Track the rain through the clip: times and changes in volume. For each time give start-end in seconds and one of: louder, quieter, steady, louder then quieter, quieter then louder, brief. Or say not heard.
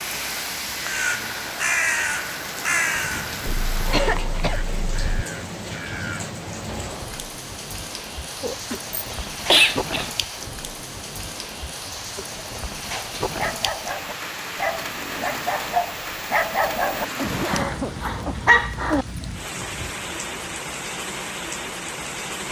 0.0-22.4 steady.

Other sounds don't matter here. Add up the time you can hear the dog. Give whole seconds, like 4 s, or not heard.
7 s.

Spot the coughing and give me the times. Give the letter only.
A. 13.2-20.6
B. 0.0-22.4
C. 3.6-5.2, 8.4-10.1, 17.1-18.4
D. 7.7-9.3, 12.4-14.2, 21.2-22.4
C.